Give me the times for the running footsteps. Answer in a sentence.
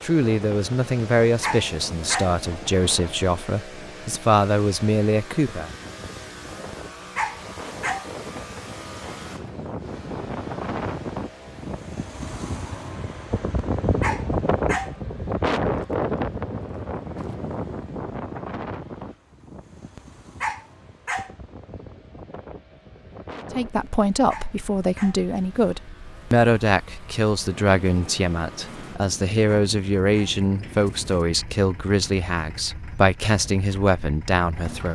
The running footsteps can't be heard in this clip.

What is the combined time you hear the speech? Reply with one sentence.
You can hear the speech for 17 seconds altogether.